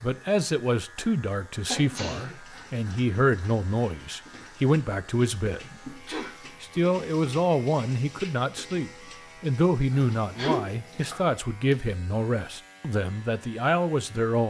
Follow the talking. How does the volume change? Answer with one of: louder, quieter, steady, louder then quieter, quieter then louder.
steady.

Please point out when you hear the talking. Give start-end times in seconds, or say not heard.
0.0-6.0, 6.6-14.4.